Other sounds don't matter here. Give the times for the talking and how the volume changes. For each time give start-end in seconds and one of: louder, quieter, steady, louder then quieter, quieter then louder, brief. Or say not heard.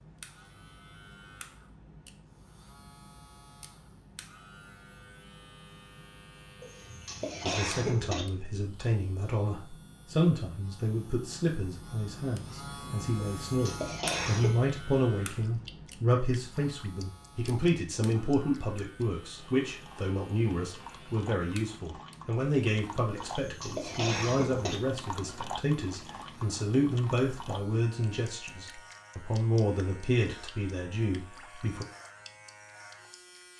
7.4-31.9 steady.